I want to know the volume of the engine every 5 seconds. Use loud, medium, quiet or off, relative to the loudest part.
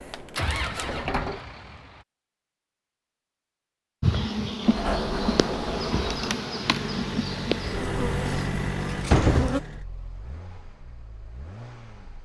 loud, loud, quiet.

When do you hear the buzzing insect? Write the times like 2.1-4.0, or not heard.
4.0-9.6.